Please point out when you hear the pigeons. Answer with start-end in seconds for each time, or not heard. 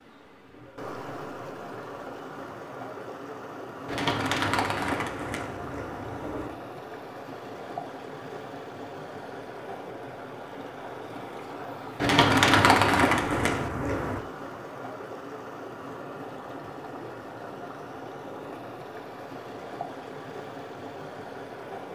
3.9-6.5, 12.0-14.2.